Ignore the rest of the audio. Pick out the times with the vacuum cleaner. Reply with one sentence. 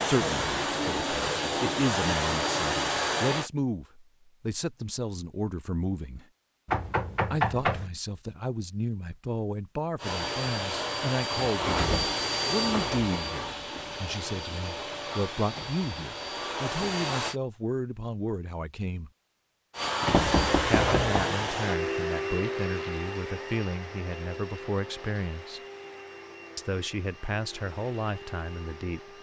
The vacuum cleaner can be heard from 0.0 to 3.5 s, from 9.9 to 17.4 s and from 19.7 to 29.1 s.